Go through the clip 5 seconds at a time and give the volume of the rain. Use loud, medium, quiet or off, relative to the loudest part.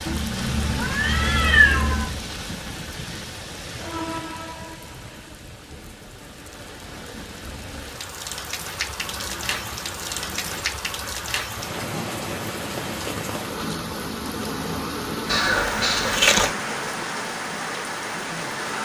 loud, medium, loud, loud.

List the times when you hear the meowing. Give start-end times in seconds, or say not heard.
0.1-2.0, 9.1-10.6, 15.2-16.6.